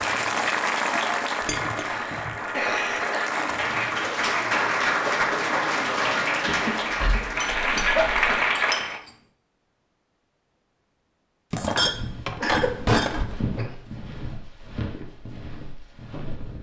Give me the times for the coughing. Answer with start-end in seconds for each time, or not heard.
1.9-3.3, 6.5-8.3, 12.4-13.7.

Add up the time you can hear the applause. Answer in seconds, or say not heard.
9 s.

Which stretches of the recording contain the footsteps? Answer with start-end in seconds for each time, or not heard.
11.8-16.5.